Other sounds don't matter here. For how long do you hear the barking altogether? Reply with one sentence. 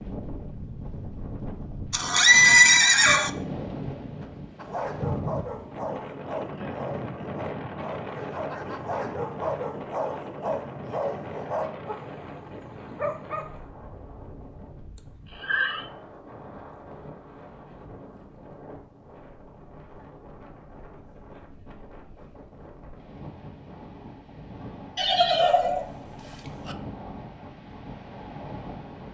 You can hear the barking for 9 seconds altogether.